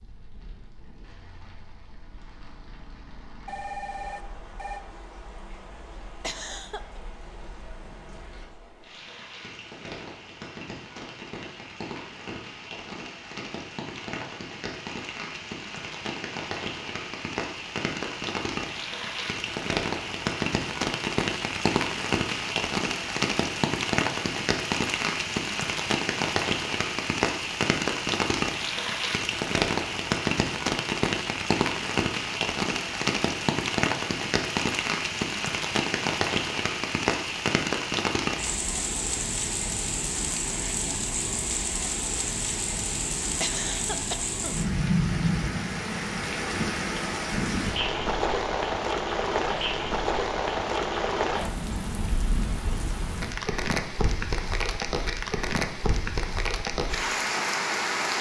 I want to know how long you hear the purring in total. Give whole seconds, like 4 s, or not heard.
not heard.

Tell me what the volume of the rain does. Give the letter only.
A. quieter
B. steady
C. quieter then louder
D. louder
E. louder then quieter
D.